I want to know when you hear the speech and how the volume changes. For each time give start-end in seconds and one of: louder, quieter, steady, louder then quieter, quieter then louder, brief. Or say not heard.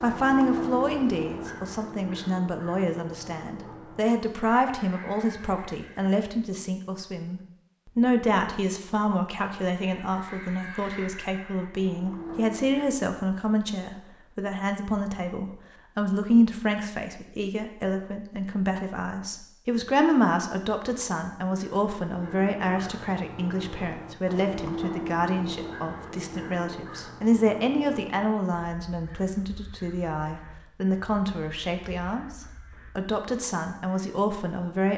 0.0-34.9 steady.